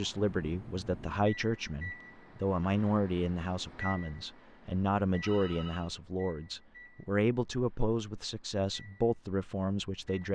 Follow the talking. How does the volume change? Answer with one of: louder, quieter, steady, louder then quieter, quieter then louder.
steady.